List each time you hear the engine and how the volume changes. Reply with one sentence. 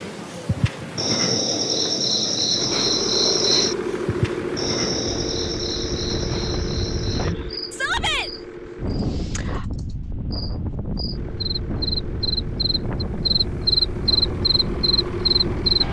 The engine can be heard from 2.5 to 9.1 s, getting quieter; and from 11.1 to 15.8 s, getting louder.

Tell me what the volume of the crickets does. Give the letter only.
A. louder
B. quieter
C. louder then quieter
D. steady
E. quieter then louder
E.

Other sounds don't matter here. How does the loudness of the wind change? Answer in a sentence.
The volume of the wind stays about the same.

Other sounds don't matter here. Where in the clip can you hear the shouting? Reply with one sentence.
The shouting can be heard from 7.7 to 8.3 s.